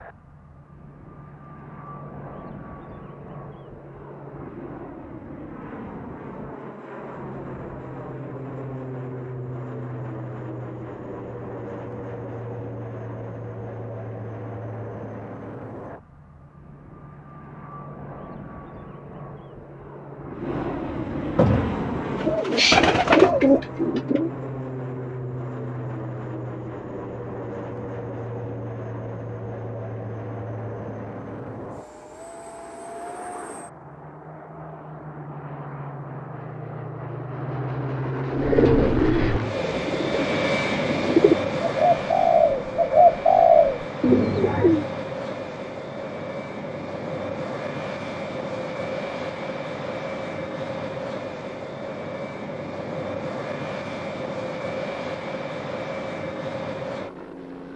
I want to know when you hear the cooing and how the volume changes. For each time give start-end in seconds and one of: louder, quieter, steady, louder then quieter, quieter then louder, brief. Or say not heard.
21.4-24.3 brief
38.3-44.9 quieter then louder.